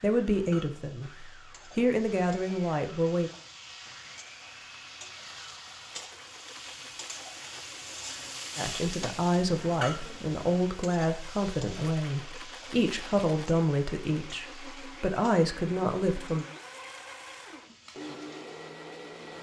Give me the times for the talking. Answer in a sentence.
You can hear the talking from 0.0 to 3.3 s and from 8.6 to 16.4 s.